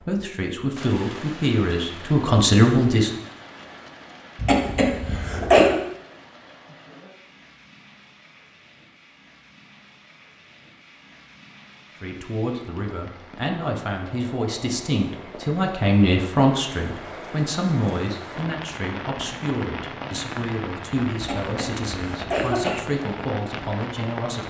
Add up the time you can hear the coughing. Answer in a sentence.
The coughing can be heard for 3 seconds in total.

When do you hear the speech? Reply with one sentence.
The speech can be heard from 0.0 to 3.1 s and from 12.0 to 24.4 s.